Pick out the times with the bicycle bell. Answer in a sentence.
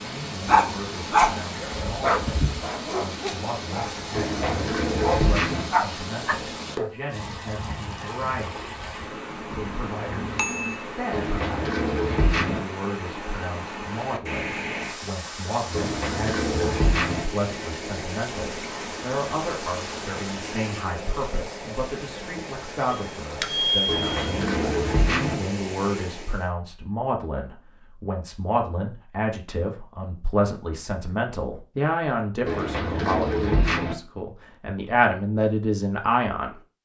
You can hear the bicycle bell from 9.5 to 10.8 s and from 22.9 to 24.4 s.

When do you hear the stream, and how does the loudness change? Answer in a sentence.
You can hear the stream from 0.0 to 26.5 s, at a steady volume.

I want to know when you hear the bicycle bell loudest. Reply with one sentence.
The volume of the bicycle bell peaks at 24 seconds.